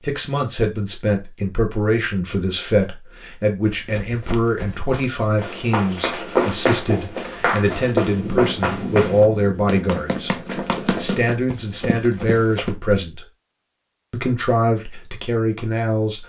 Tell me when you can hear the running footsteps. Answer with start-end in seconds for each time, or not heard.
3.6-12.8.